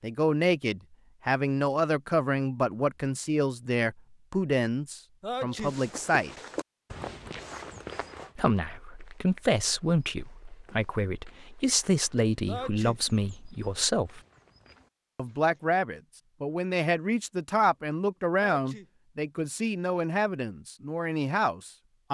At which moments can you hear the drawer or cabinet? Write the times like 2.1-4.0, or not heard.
not heard.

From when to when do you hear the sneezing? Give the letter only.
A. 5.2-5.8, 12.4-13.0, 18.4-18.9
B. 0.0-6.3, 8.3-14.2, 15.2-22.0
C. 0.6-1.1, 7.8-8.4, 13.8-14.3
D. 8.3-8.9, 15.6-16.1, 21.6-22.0
A.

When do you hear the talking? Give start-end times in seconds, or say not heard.
0.0-6.3, 8.3-14.2, 15.2-22.0.